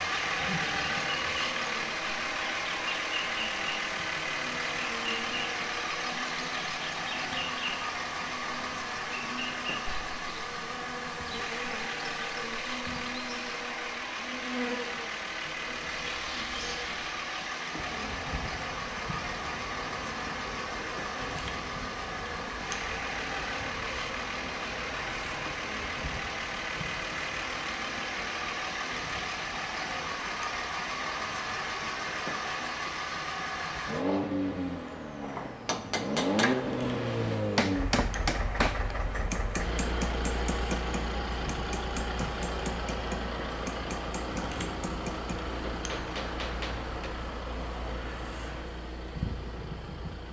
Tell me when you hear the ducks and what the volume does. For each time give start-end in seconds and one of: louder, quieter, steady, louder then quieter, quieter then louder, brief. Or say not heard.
not heard.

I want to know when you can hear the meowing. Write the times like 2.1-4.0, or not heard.
not heard.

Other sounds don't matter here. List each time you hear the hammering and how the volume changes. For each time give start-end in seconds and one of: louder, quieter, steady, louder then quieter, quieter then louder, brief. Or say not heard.
35.2-47.1 quieter.